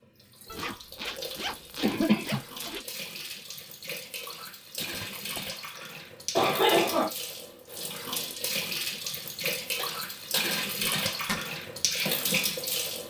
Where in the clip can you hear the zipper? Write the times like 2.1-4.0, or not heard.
0.5-2.9, 4.8-5.5, 10.6-11.4.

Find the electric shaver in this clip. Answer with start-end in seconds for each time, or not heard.
not heard.